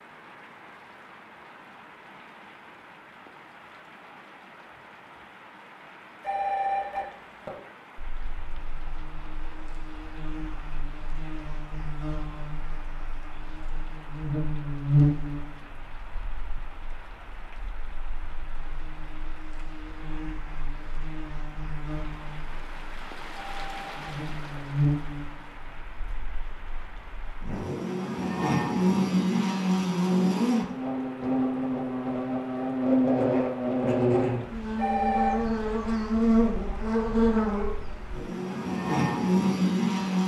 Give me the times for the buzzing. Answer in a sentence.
You can hear the buzzing from 8.2 to 40.2 s.